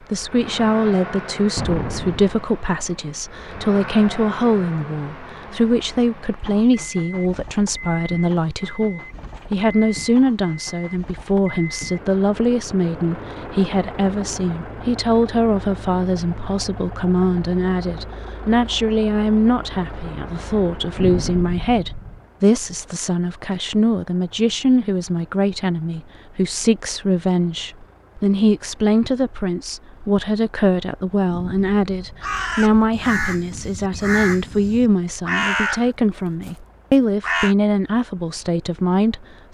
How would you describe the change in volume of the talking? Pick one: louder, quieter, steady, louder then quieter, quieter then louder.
steady.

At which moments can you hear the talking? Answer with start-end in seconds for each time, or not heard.
0.1-39.4.